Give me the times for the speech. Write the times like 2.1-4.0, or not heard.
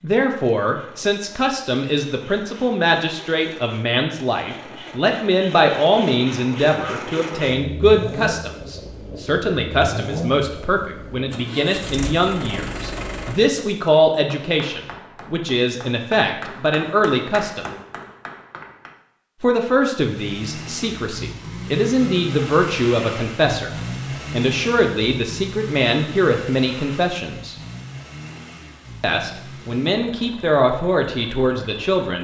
0.0-17.6, 19.4-23.7, 24.3-27.6, 29.0-32.2.